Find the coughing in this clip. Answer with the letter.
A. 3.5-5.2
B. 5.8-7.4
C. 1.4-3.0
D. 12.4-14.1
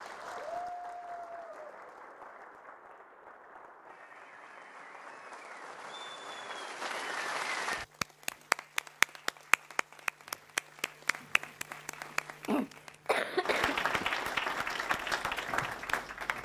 D.